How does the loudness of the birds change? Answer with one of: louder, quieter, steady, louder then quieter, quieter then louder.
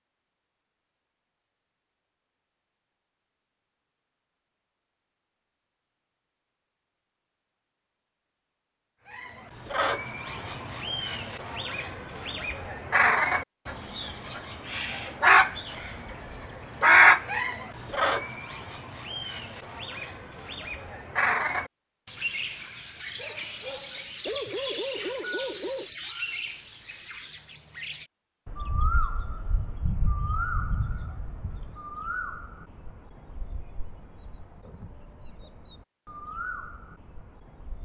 louder then quieter.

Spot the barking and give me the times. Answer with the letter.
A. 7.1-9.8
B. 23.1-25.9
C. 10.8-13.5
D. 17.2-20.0
B.